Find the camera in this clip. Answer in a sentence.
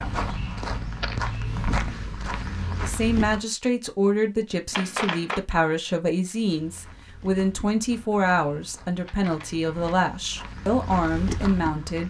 You can hear the camera from 0.6 to 1.2 s, from 4.7 to 5.5 s and from 9.1 to 9.9 s.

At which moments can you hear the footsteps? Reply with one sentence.
The footsteps can be heard from 0.0 to 3.5 s and from 6.4 to 12.0 s.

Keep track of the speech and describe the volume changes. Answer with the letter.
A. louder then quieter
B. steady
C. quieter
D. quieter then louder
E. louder
B.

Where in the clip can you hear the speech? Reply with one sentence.
The speech can be heard from 2.8 to 12.0 s.